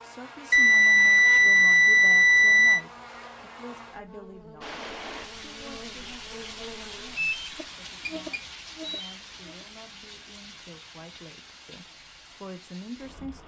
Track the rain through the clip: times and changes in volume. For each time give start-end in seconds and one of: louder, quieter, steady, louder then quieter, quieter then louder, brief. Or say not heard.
4.6-13.4 quieter.